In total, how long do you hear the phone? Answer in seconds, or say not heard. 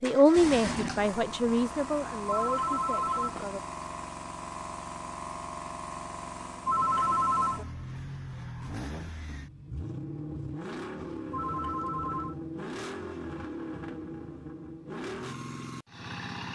3 s.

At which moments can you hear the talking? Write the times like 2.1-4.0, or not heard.
0.0-3.6.